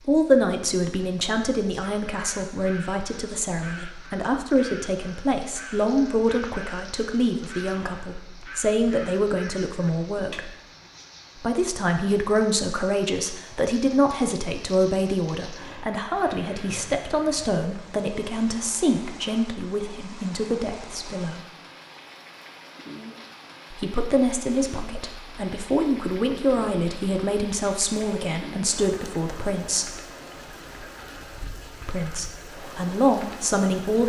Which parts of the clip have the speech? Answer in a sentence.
You can hear the speech from 0.1 to 10.6 s, from 11.4 to 21.4 s, from 23.7 to 30.0 s and from 31.9 to 34.0 s.